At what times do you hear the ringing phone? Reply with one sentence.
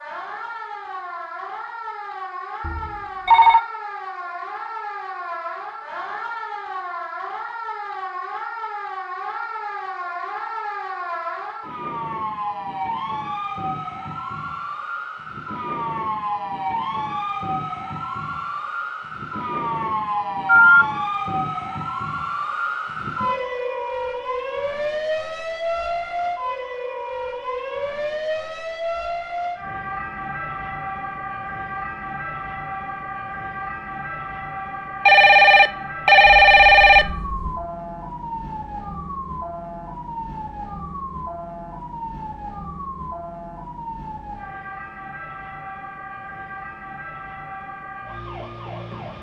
You can hear the ringing phone from 2.6 to 3.6 s, from 20.4 to 20.9 s and from 35.0 to 37.5 s.